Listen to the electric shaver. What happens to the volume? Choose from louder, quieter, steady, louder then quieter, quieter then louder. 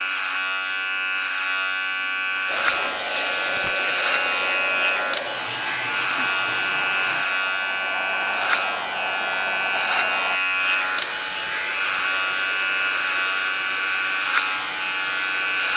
steady.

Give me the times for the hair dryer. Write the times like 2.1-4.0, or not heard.
2.5-15.7.